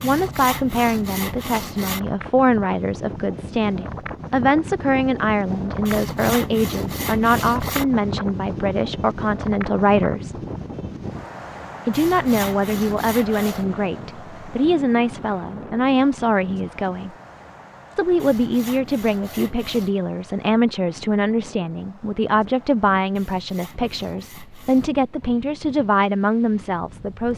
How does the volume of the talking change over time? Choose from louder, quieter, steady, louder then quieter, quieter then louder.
steady.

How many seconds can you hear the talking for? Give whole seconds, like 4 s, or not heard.
25 s.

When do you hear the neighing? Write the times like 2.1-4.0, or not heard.
not heard.